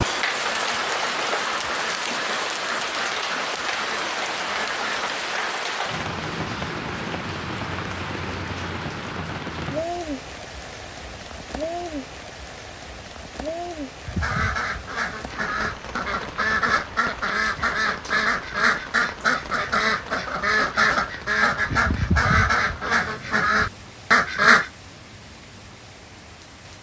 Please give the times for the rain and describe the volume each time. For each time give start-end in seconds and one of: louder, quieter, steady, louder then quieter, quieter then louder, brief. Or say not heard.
0.0-26.7 quieter.